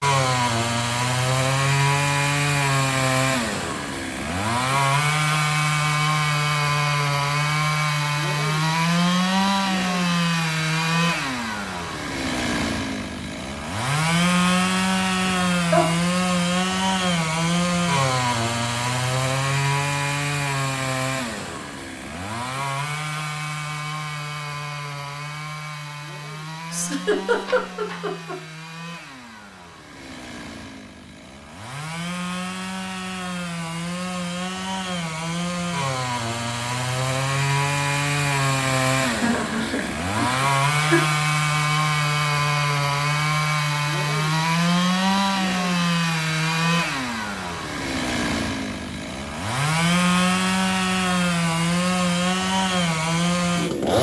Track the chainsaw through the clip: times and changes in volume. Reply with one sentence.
The chainsaw can be heard from 0.0 to 53.9 s, getting quieter then louder.